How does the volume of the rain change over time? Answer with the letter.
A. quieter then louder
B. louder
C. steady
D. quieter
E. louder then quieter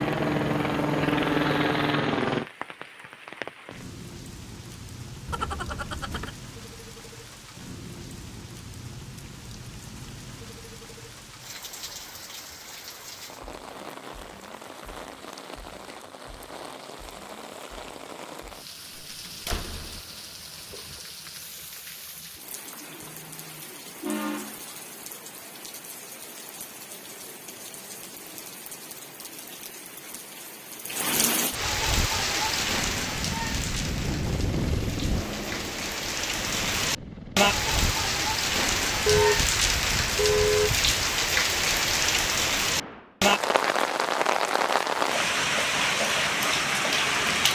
B.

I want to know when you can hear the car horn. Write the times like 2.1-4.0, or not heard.
5.2-6.3, 23.0-24.7, 39.0-40.7.